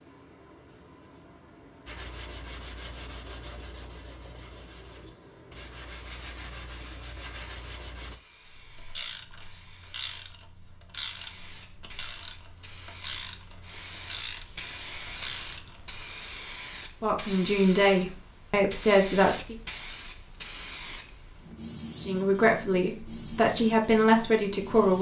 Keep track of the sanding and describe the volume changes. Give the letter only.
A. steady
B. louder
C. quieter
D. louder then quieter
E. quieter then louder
E.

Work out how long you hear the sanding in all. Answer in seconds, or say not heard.
6 s.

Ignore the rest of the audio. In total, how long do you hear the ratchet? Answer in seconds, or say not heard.
8 s.